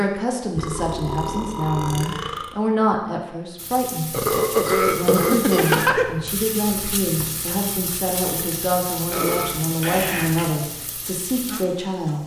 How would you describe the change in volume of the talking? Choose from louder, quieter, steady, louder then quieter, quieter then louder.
steady.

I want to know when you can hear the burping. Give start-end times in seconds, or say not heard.
0.6-2.5, 4.1-6.1, 9.1-10.6.